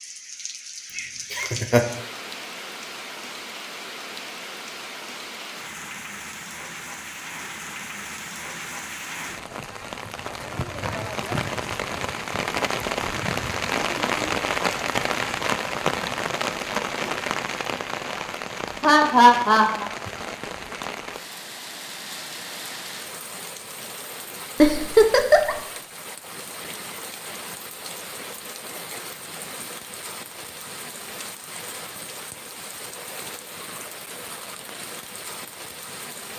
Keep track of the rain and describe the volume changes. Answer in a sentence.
The loudness of the rain goes up, then down.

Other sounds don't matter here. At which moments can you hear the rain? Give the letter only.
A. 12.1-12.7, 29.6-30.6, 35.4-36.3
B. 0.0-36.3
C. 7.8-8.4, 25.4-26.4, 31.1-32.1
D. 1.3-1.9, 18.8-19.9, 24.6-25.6
B.